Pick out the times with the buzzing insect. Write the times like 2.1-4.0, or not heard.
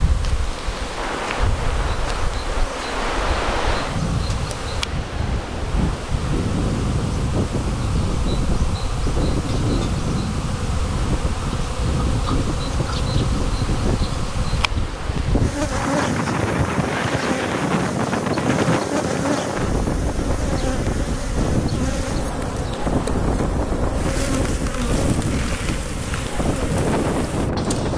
0.0-27.9.